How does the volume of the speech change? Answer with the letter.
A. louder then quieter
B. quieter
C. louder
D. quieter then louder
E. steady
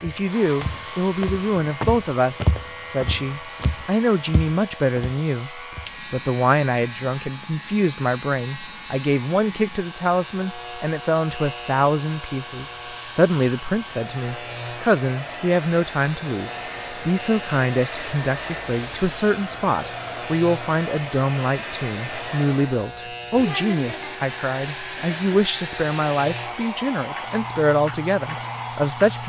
E.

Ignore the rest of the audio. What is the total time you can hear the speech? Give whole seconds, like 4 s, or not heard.
29 s.